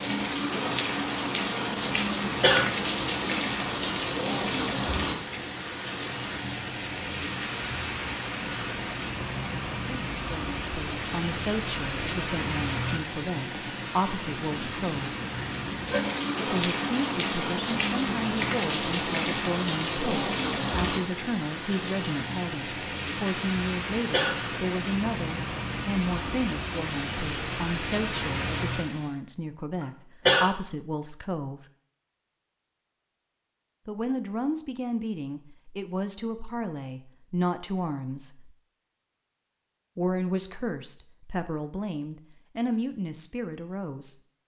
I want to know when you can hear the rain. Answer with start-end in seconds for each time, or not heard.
0.0-29.1.